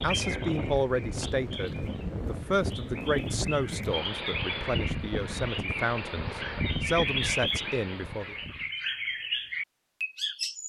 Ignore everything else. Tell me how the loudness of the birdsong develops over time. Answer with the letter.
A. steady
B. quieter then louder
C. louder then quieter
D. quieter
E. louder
E.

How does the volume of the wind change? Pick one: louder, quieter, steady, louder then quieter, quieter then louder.
steady.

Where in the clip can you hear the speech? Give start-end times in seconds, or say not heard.
0.0-8.3.